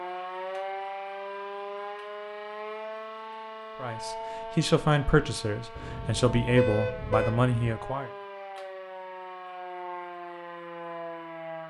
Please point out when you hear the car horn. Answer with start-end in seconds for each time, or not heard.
5.8-7.5.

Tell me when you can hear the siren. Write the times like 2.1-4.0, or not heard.
0.0-11.6.